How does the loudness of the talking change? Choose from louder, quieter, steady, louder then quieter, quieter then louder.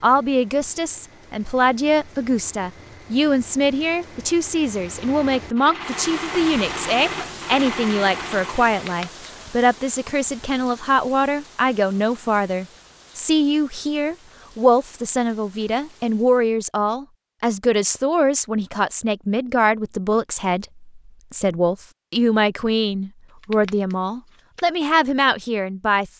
steady.